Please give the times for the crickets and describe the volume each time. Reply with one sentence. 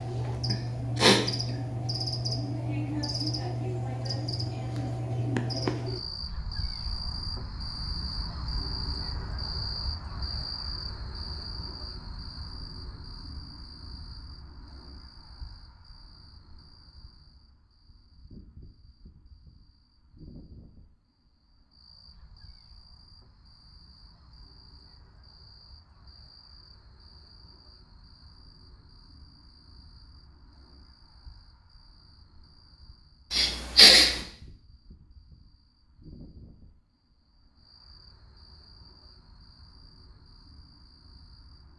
You can hear the crickets from 0.0 to 41.7 s, getting quieter.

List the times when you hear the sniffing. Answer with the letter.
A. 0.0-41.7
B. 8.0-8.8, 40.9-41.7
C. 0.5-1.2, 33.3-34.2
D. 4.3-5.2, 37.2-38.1
C.